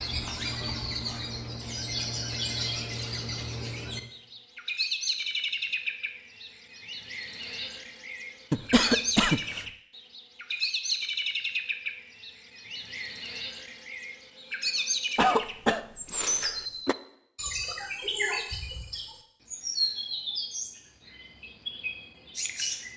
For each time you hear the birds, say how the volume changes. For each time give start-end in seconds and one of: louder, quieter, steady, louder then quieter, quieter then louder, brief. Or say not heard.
0.0-22.9 steady.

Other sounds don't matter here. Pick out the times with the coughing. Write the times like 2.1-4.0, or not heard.
8.5-9.7, 15.2-16.9.